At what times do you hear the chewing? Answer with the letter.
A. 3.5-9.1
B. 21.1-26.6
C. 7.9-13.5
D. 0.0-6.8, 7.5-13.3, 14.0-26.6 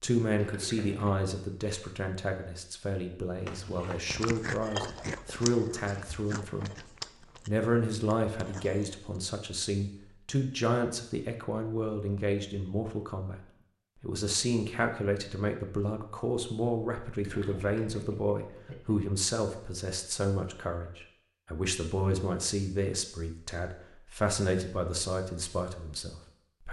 A.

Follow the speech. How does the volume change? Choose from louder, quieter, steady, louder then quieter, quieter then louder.
steady.